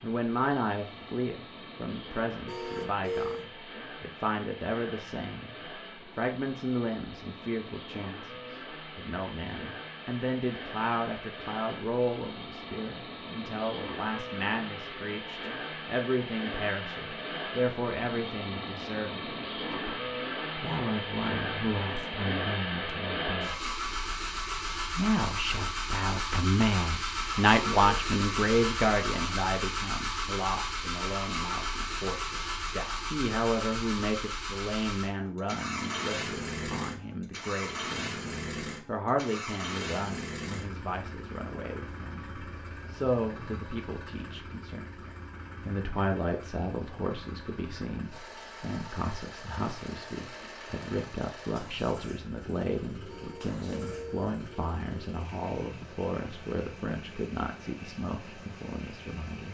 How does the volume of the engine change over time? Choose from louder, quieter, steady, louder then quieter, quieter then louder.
louder then quieter.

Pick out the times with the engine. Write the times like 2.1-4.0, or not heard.
0.0-59.4.